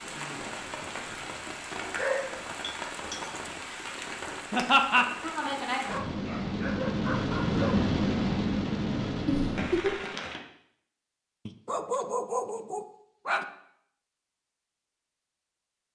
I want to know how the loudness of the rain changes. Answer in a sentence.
The loudness of the rain goes up.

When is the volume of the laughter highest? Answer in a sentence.
The volume of the laughter peaks at 5 seconds.